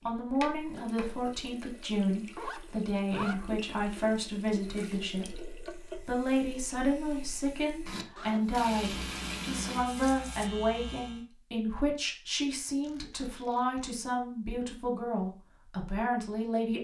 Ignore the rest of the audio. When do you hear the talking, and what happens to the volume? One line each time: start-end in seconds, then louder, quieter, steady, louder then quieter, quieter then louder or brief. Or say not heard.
0.1-16.7 steady.